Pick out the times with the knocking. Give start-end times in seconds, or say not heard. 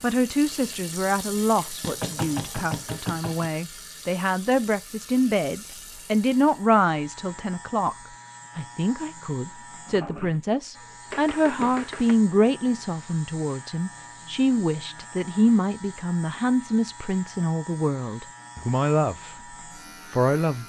1.8-3.5, 11.1-12.2.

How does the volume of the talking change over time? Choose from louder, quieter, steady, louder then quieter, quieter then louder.
steady.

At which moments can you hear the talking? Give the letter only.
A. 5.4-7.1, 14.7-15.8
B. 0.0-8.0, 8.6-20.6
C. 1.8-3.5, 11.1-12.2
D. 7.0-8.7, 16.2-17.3
B.